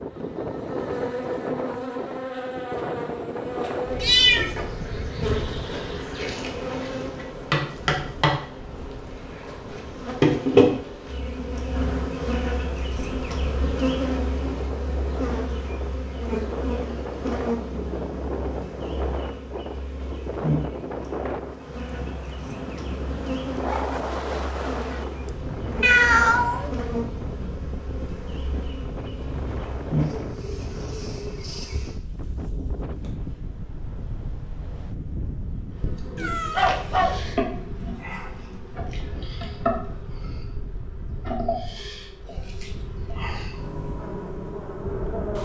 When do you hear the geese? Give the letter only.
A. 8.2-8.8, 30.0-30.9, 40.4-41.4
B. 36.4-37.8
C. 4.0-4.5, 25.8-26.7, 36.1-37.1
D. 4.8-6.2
D.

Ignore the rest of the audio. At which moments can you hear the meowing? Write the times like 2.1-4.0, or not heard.
4.0-4.5, 25.8-26.7, 36.1-37.1.